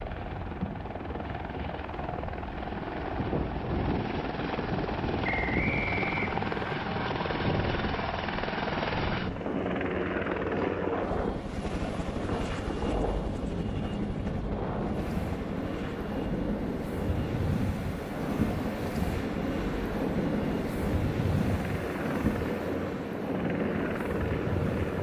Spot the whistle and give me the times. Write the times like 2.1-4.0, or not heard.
5.2-6.8.